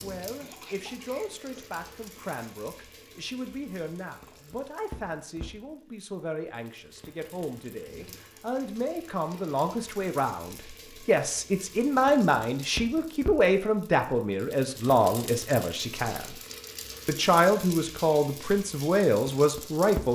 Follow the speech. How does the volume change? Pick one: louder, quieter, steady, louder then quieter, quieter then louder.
louder.